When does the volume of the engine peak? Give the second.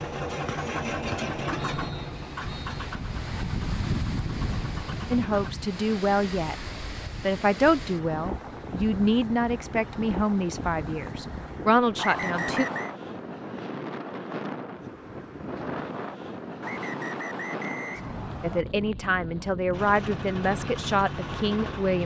1 s.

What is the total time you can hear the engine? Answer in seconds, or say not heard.
8 s.